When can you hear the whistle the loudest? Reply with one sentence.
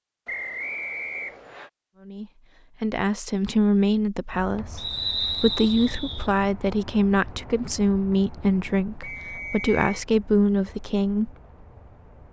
The volume of the whistle peaks at 5 seconds.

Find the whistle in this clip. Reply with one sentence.
The whistle can be heard from 0.2 to 1.7 s, from 4.8 to 6.3 s and from 9.0 to 10.0 s.